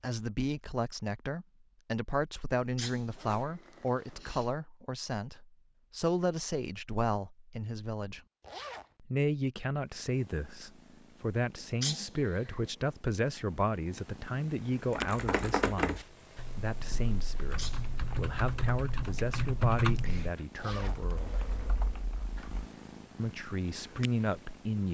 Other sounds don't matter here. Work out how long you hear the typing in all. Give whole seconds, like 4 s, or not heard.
8 s.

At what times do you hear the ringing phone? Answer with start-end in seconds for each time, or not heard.
not heard.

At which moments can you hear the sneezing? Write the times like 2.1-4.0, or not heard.
2.5-4.5, 11.6-12.6, 17.4-17.9.